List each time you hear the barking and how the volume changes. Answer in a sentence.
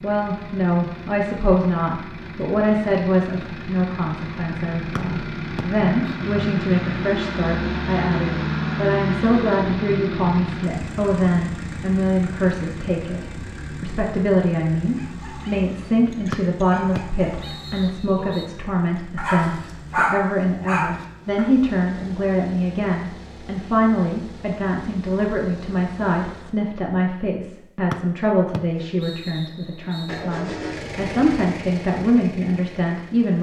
The barking can be heard from 14.8 to 21.4 s, getting louder.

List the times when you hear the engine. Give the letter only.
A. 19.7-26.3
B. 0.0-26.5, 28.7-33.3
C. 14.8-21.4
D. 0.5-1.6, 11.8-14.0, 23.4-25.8
B.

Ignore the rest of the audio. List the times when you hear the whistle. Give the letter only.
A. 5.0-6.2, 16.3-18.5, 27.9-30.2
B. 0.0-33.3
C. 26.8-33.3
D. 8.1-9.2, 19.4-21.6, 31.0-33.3
A.